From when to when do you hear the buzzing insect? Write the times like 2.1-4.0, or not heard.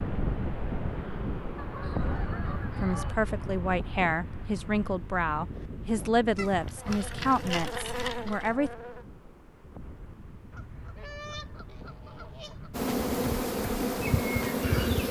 6.8-9.1, 12.7-15.0.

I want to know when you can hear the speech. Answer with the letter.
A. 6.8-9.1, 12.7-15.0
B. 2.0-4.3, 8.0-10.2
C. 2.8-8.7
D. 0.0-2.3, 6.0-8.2
C.